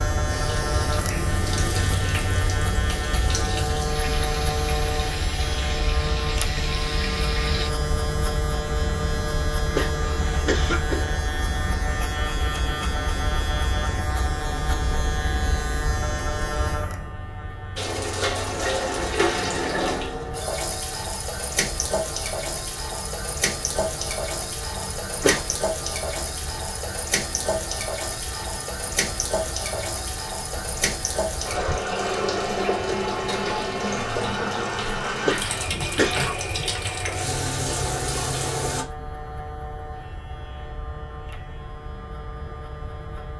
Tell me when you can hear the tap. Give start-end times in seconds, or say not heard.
0.0-7.7, 17.8-38.9.